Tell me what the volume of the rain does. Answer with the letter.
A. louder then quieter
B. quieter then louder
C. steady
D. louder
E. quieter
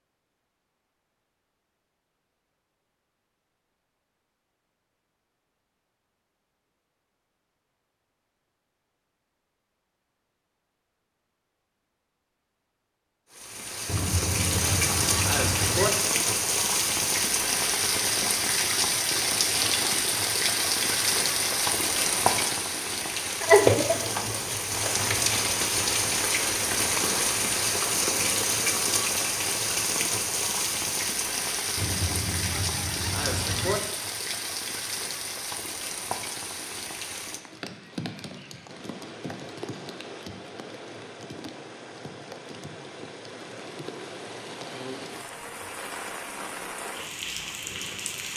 E.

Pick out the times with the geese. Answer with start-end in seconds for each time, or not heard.
13.8-15.9, 31.8-33.8.